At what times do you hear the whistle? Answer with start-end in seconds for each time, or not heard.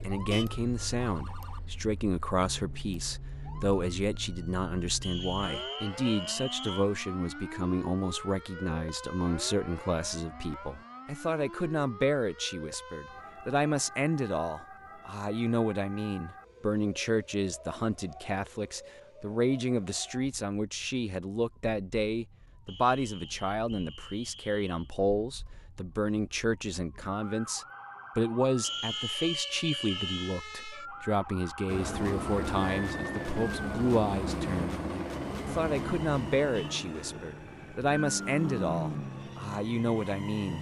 5.0-6.8, 22.6-24.8, 28.6-30.4.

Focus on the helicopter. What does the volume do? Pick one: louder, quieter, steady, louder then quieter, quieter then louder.
quieter.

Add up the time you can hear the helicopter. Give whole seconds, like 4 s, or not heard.
9 s.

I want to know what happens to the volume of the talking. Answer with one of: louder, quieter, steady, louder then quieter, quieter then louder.
steady.